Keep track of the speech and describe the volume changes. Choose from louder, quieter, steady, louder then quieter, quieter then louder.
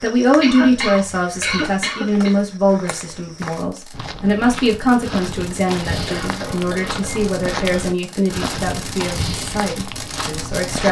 quieter.